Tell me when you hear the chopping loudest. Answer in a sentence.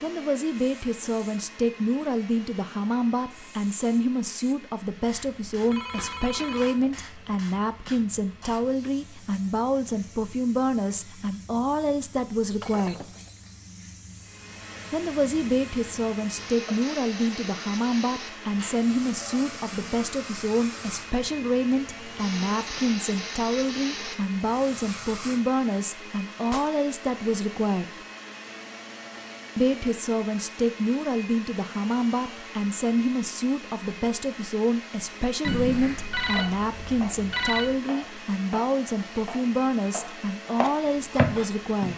The volume of the chopping peaks at 41 seconds.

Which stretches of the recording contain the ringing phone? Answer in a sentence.
The ringing phone can be heard from 5.6 to 6.9 s, from 18.6 to 19.4 s and from 35.4 to 37.8 s.